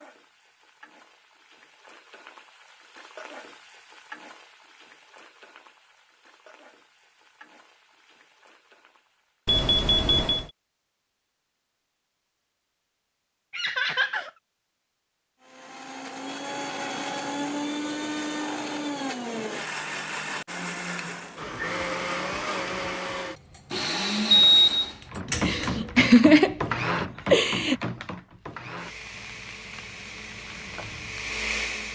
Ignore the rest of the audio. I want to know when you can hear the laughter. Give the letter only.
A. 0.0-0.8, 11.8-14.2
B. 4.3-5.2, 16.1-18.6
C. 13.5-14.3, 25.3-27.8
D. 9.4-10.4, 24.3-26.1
C.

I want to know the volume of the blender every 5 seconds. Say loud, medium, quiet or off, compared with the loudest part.
off, off, off, loud, loud, loud, loud.